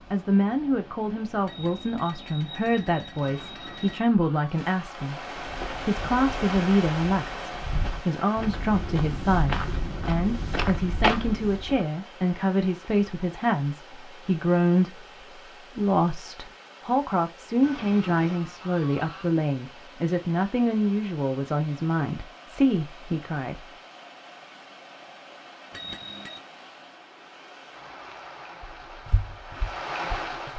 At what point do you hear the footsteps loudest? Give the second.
11 s.